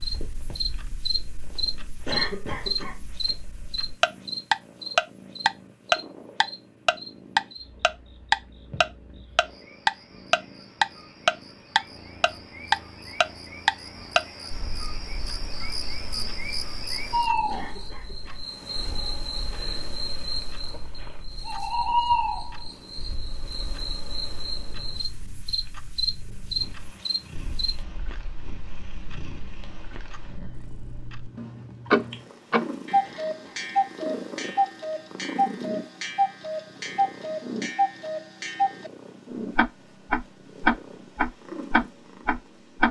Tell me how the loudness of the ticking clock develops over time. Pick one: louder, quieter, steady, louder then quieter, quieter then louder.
quieter then louder.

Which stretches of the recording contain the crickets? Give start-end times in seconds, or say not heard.
0.0-27.8.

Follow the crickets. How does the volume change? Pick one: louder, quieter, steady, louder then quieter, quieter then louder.
quieter then louder.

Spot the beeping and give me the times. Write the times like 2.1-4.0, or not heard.
not heard.